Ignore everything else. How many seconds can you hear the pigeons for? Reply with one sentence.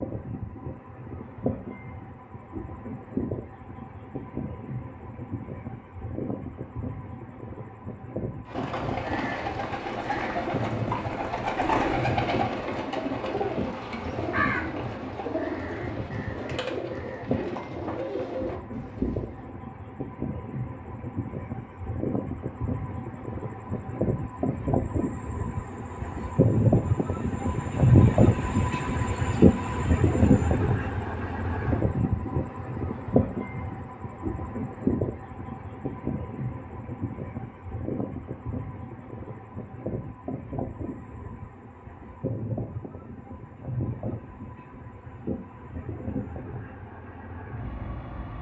You can hear the pigeons for 11 seconds altogether.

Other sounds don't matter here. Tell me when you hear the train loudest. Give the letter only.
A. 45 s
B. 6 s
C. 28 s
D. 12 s
C.